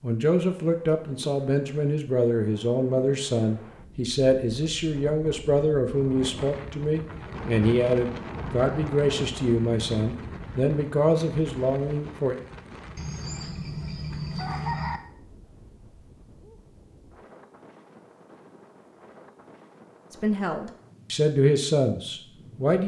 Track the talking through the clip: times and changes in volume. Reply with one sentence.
The talking can be heard from 0.0 to 12.3 s, at a steady volume; and briefly from 20.1 to 22.8 s.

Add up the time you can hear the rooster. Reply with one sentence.
You can hear the rooster for 2 seconds altogether.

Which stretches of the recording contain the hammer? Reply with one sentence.
The hammer can't be heard in this clip.